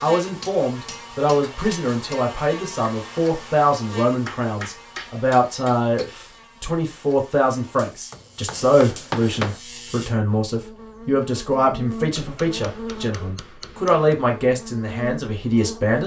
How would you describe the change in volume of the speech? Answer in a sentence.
The volume of the speech stays about the same.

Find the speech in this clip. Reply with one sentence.
You can hear the speech from 0.0 to 16.0 s.